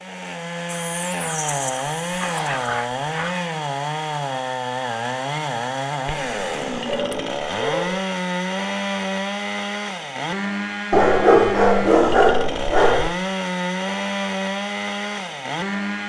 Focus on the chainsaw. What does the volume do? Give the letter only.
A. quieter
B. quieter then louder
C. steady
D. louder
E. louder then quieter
C.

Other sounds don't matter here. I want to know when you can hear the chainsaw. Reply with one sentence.
You can hear the chainsaw from 0.0 to 16.0 s.